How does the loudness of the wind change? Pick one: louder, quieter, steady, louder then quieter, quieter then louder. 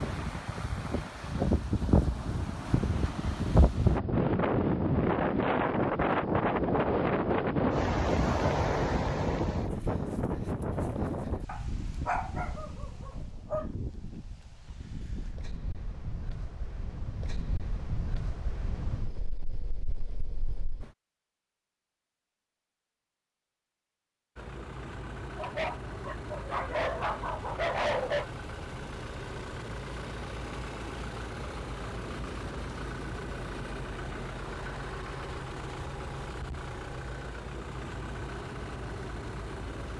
quieter.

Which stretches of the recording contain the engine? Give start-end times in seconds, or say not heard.
24.4-39.9.